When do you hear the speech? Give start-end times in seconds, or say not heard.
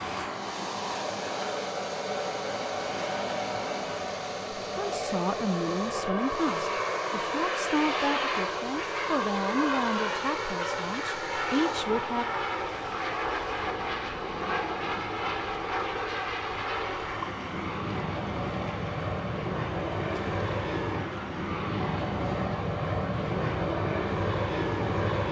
4.8-12.2.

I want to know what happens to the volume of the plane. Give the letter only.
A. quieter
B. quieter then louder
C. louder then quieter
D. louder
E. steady
E.